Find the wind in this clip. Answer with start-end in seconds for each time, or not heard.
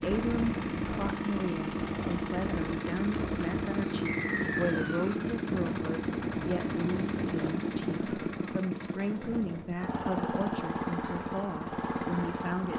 0.0-9.8.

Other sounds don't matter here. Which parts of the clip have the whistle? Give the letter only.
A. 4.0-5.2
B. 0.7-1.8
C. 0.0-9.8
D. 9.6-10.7
A.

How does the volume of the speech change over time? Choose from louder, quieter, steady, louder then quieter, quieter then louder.
steady.